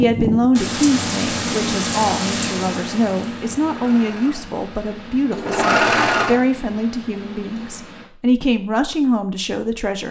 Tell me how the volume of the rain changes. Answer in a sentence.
The loudness of the rain goes down.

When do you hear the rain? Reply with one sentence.
You can hear the rain from 0.0 to 8.1 s.